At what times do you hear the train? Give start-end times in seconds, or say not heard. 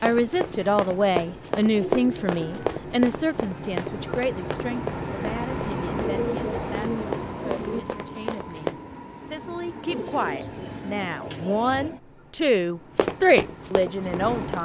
0.0-14.6.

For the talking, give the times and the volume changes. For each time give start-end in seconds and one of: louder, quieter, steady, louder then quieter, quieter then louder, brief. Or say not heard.
0.0-14.6 quieter then louder.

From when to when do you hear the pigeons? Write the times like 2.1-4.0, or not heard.
1.7-2.8, 5.8-7.8, 9.9-11.9.